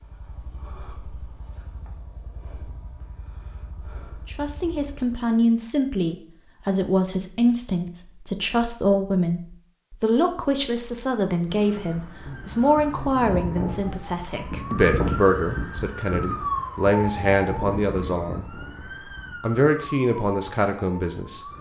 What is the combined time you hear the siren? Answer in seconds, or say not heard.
10 s.